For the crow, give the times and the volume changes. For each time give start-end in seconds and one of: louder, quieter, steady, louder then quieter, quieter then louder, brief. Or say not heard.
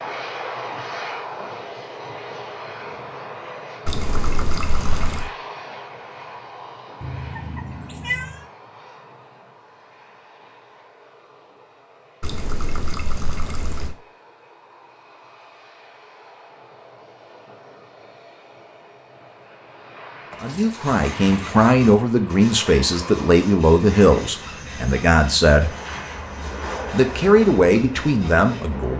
not heard.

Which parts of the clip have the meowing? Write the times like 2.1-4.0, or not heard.
7.0-8.4.